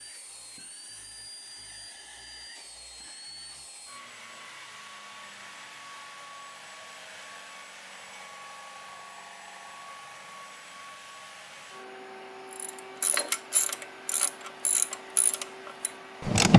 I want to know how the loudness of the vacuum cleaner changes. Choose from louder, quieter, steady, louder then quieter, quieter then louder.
steady.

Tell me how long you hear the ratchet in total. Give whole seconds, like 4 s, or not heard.
4 s.